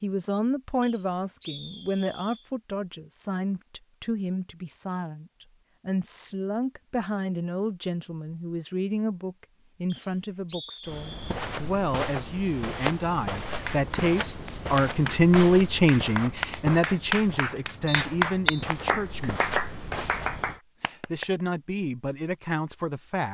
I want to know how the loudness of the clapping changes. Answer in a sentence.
The volume of the clapping goes up, then down.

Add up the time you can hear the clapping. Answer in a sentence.
You can hear the clapping for 8 seconds altogether.